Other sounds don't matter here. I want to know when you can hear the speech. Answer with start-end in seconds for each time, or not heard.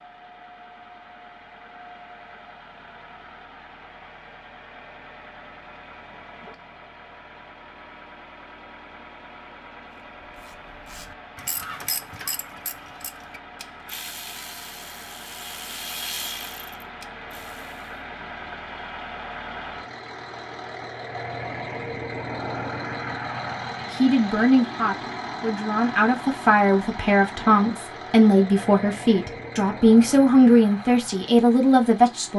23.9-32.3.